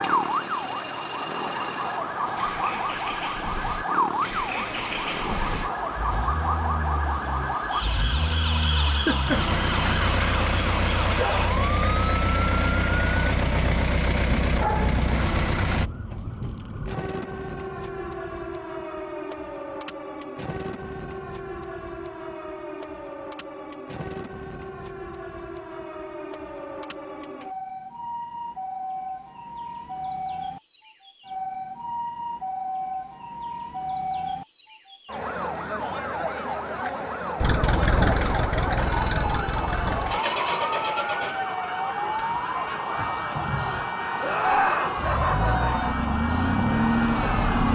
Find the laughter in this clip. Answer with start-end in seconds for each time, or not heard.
8.8-9.9, 44.2-45.9.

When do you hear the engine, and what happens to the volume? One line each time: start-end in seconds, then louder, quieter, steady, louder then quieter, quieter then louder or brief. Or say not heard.
0.0-15.9 louder
37.4-47.6 quieter then louder.